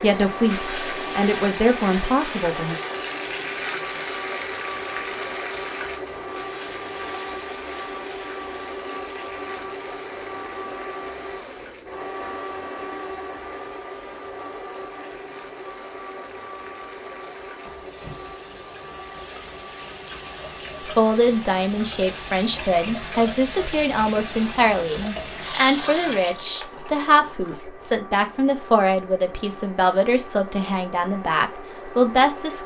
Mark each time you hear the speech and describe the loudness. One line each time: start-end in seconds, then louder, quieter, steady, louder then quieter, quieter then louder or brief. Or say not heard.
0.0-2.8 brief
20.9-32.6 steady.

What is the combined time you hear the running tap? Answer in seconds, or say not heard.
28 s.